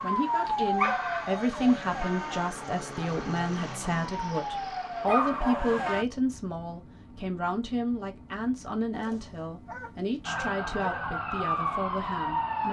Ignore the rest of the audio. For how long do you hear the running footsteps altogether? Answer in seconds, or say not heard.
not heard.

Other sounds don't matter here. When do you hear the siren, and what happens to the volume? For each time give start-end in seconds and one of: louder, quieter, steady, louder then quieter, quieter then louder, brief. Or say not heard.
0.0-6.0 quieter then louder
10.2-12.6 brief.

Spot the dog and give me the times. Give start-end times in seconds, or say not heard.
0.5-1.5, 5.0-5.8, 8.9-11.1.